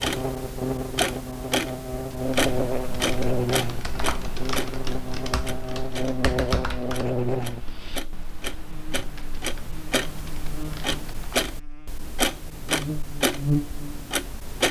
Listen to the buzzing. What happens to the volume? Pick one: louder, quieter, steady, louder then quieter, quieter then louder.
quieter then louder.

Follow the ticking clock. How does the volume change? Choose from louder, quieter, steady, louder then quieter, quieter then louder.
quieter then louder.